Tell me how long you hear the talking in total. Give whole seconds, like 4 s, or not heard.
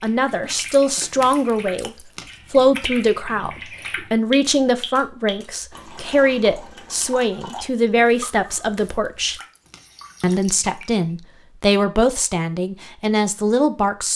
13 s.